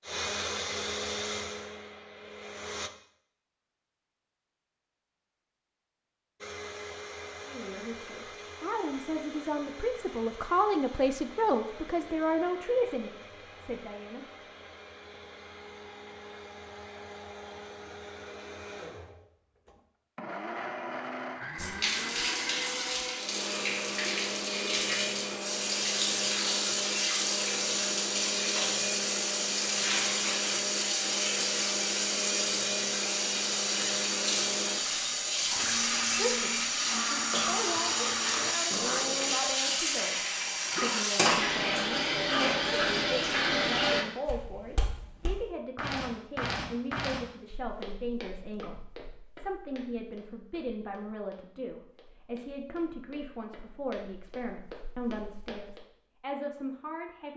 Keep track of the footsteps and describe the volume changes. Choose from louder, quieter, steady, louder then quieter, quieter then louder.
quieter then louder.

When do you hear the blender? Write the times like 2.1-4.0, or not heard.
0.0-2.9, 6.4-39.4.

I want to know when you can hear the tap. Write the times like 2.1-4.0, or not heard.
21.6-44.0.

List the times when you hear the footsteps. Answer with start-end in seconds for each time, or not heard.
44.2-55.8.